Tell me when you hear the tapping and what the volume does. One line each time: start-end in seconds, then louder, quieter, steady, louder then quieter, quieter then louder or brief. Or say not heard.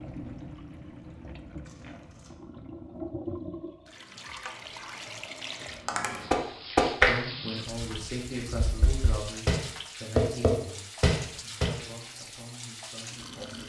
5.8-11.7 quieter then louder.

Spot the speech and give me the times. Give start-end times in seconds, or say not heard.
7.0-13.6.